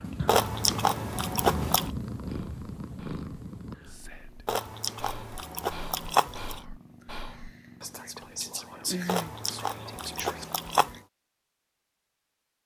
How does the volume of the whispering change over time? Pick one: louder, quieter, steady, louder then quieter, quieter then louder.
louder.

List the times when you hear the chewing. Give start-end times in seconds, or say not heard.
0.2-1.9, 4.5-6.6, 9.1-10.9.